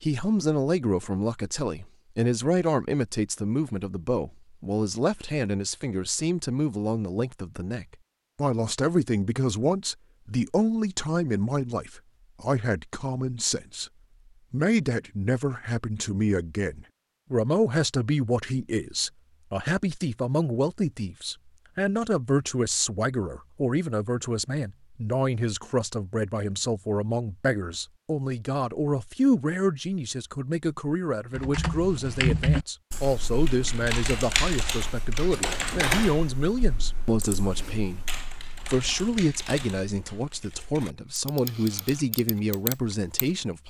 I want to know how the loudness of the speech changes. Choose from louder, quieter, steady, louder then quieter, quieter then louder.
steady.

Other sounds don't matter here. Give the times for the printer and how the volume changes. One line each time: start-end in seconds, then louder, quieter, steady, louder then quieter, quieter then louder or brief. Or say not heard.
not heard.